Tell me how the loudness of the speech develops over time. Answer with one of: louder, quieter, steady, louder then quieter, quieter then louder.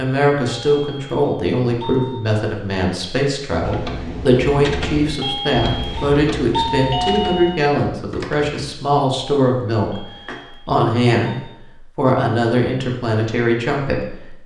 steady.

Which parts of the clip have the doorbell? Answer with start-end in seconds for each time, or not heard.
0.5-2.1, 5.0-7.6, 9.8-11.5.